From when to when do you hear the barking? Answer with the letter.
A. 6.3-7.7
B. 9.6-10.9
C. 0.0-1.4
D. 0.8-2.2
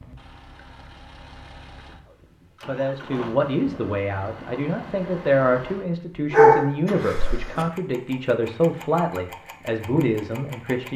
A.